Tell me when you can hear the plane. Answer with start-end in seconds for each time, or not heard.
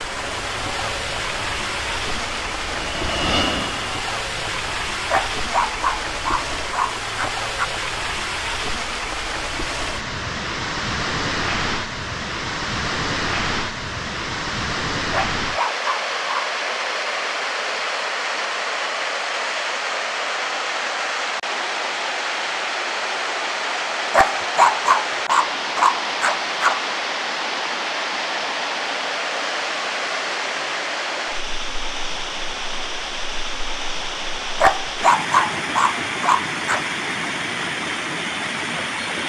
0.0-4.7.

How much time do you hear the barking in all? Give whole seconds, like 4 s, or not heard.
9 s.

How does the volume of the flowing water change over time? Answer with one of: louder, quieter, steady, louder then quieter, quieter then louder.
steady.